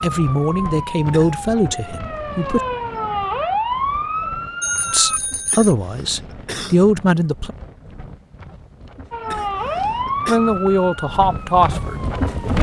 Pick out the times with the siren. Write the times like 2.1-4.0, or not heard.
0.1-5.2, 9.1-12.2.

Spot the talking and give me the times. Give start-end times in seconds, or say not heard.
0.0-2.6, 4.9-7.5, 10.2-12.5.